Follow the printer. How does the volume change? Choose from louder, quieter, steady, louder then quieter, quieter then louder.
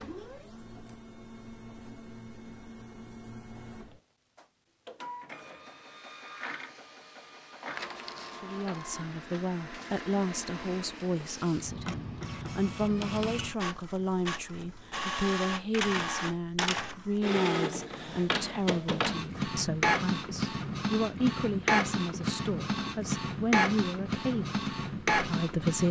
louder.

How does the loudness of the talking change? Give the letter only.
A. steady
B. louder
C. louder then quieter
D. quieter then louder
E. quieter
A.